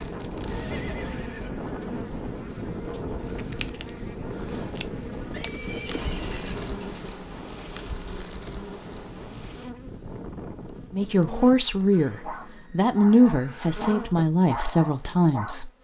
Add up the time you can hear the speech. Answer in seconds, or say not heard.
5 s.